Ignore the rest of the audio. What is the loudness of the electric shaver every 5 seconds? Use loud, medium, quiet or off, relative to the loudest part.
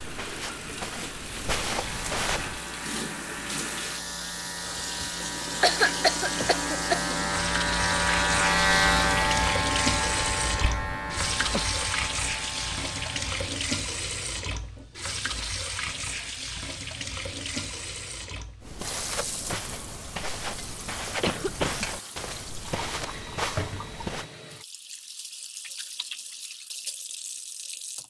quiet, loud, medium, off, off, off.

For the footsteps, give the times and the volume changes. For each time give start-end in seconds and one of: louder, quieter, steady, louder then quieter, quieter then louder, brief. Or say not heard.
0.0-2.6 brief
18.6-24.2 steady.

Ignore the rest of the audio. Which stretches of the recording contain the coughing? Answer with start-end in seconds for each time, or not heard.
5.6-7.2, 11.1-11.7, 21.1-21.9.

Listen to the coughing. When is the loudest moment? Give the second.
6 s.